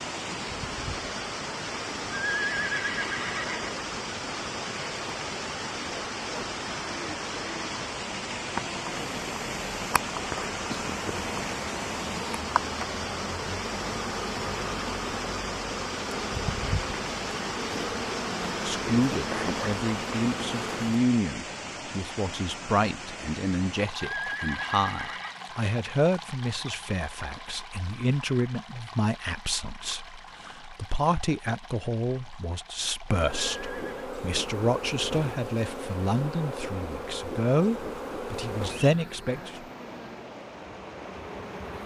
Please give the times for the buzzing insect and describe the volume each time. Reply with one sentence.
The buzzing insect can be heard from 0.0 to 21.1 s, getting louder; and from 33.1 to 41.8 s, getting quieter.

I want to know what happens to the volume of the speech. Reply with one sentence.
The volume of the speech stays about the same.